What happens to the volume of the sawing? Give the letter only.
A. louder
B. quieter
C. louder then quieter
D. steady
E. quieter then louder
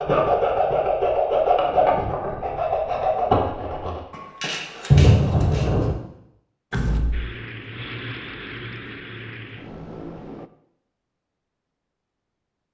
B.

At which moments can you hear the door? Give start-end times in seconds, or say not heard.
6.7-7.3.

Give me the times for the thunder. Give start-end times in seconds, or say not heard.
4.1-6.0.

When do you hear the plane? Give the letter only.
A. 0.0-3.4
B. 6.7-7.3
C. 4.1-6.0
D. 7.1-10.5
D.